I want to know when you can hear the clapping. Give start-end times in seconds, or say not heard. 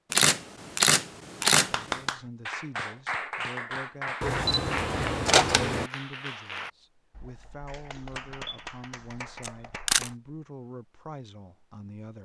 1.4-10.2.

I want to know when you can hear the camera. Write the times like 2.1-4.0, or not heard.
0.1-2.1, 4.2-5.9, 9.4-10.1.